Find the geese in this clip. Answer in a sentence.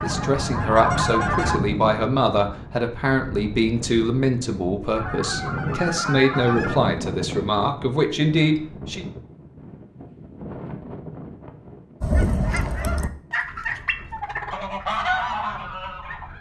You can hear the geese from 0.0 to 1.6 s, from 5.0 to 6.8 s and from 12.0 to 16.3 s.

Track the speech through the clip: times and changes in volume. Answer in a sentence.
You can hear the speech from 0.0 to 9.1 s, at a steady volume.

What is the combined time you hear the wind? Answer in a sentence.
You can hear the wind for 16 seconds altogether.